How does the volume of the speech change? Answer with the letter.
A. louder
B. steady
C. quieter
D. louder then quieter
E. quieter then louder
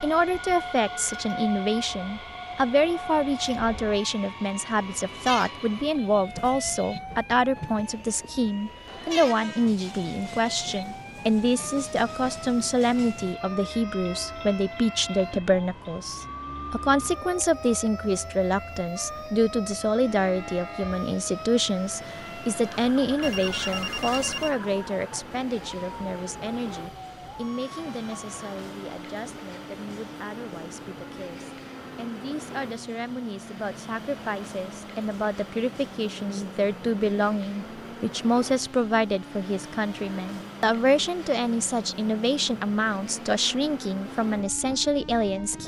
E.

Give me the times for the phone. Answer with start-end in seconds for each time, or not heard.
23.2-24.6.